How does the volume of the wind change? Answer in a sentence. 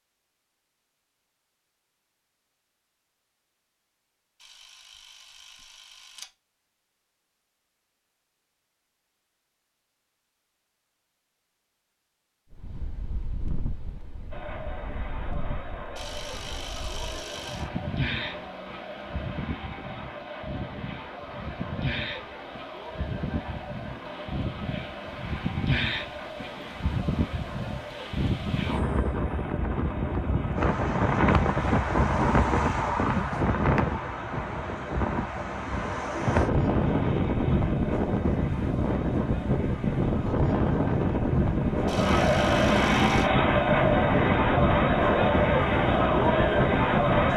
The volume of the wind goes up.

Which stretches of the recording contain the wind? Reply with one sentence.
The wind can be heard from 12.5 to 47.3 s.